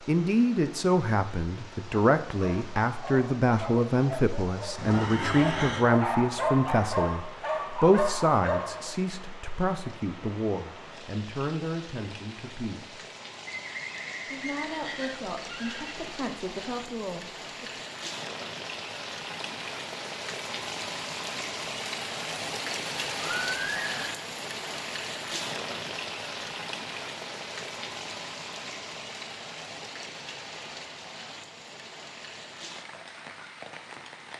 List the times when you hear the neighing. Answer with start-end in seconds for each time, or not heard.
4.8-5.8, 13.4-16.1, 23.2-24.1.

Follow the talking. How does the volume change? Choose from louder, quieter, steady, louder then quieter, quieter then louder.
quieter.